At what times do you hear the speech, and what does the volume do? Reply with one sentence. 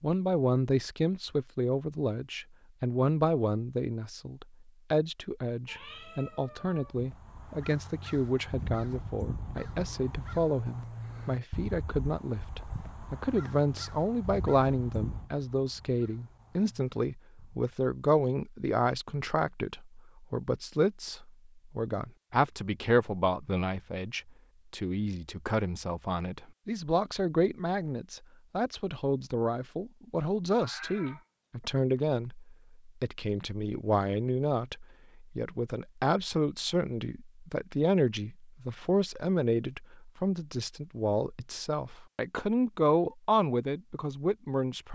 You can hear the speech from 0.0 to 44.9 s, at a steady volume.